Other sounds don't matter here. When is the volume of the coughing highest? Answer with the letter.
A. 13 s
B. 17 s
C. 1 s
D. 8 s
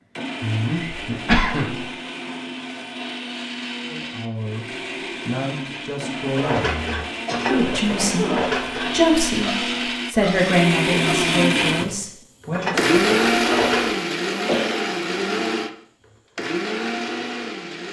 C.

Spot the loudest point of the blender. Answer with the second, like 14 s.
13 s.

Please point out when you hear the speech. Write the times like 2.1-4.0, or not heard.
3.8-12.8.